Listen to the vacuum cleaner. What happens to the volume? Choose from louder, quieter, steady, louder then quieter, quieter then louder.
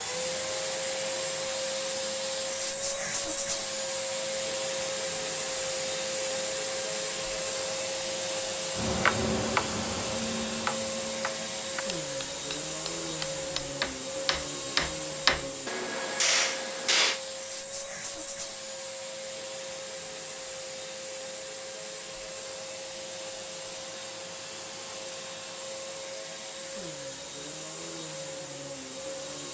quieter.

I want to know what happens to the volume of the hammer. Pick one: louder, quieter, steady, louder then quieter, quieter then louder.
quieter then louder.